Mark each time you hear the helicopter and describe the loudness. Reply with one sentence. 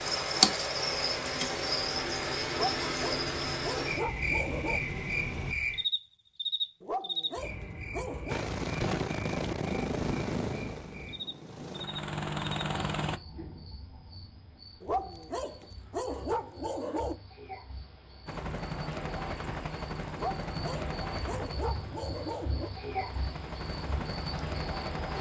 You can hear the helicopter from 0.0 to 5.5 s, getting louder; from 8.2 to 13.2 s, getting quieter then louder; and from 18.2 to 25.1 s, getting quieter then louder.